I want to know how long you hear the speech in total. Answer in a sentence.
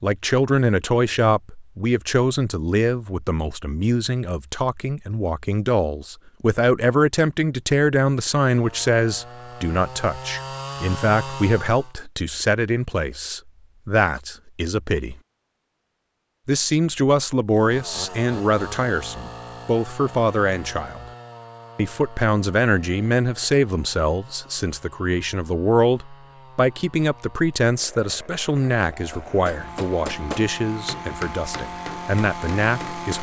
You can hear the speech for 31 seconds altogether.